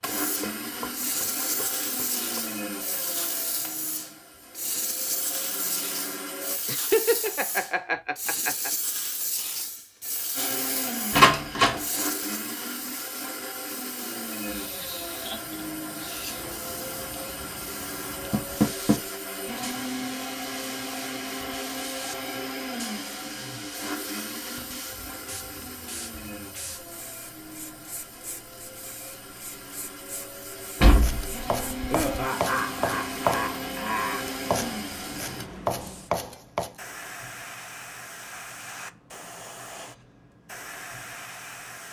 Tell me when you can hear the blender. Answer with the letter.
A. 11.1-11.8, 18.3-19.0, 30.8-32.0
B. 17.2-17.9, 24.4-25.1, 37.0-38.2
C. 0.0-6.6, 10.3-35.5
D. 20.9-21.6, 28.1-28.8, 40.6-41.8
C.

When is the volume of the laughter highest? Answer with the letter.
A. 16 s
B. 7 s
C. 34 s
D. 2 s
B.